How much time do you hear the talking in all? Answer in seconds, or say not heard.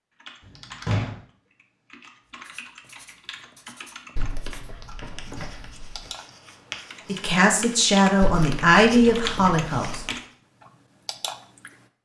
3 s.